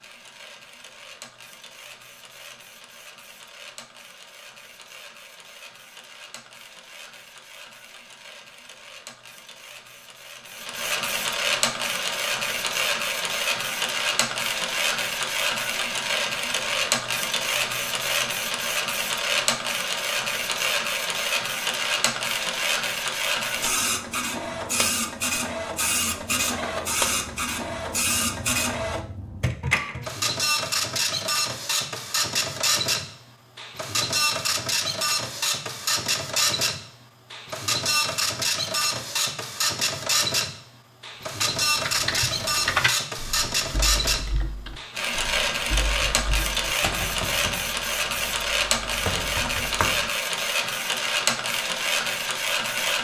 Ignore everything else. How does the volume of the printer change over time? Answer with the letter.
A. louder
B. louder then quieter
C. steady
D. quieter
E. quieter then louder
A.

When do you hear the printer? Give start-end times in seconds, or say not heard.
0.0-52.9.